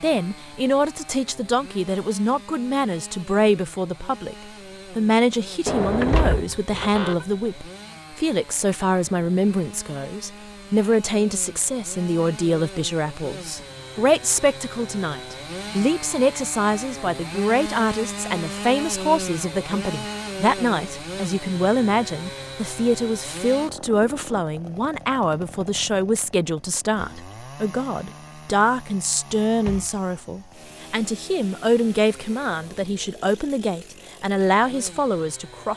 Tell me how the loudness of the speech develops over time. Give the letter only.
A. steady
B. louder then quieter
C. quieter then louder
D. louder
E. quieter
A.